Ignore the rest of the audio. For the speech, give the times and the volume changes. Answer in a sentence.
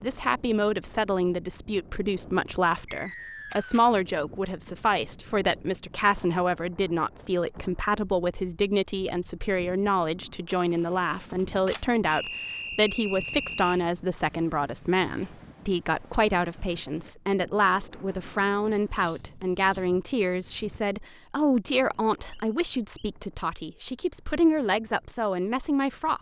The speech can be heard from 0.0 to 26.1 s, at a steady volume.